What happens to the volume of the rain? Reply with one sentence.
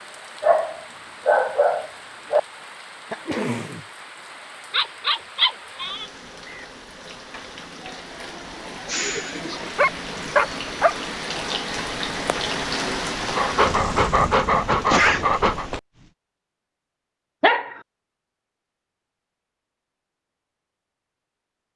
The volume of the rain goes up.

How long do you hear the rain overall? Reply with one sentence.
You can hear the rain for 16 seconds altogether.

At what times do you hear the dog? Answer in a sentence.
The dog can be heard from 0.4 to 2.4 s, from 4.7 to 6.7 s, from 9.6 to 10.9 s, from 13.3 to 15.7 s and from 17.4 to 17.8 s.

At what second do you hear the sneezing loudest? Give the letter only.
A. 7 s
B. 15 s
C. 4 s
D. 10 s
B.